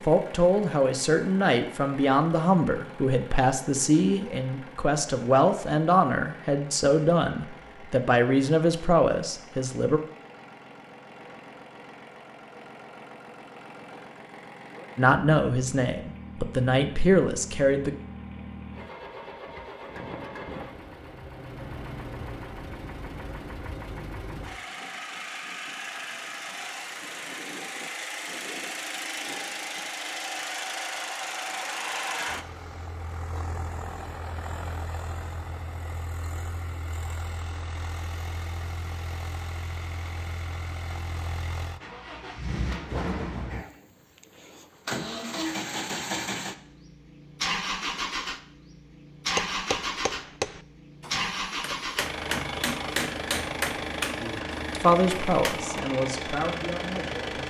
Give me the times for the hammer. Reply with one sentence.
You can hear the hammer from 49.4 to 55.8 s.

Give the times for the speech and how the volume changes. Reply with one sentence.
You can hear the speech from 0.0 to 10.0 s, at a steady volume; briefly from 14.9 to 17.9 s; and briefly from 54.7 to 57.4 s.